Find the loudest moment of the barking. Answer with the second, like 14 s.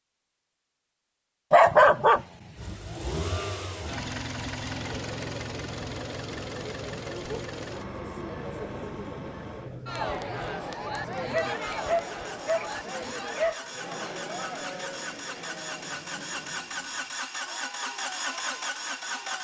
2 s.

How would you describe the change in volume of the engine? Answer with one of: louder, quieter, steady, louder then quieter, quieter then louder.
quieter then louder.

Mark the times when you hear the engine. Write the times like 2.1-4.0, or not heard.
2.5-19.3.